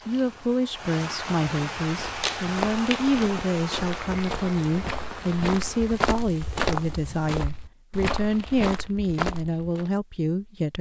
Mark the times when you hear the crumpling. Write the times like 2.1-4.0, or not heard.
2.2-3.3.